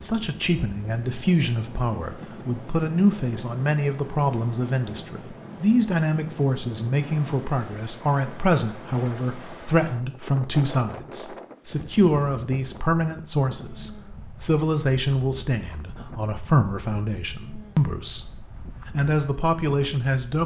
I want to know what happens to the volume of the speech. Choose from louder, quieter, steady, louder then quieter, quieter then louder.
steady.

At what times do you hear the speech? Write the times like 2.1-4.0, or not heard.
0.0-20.4.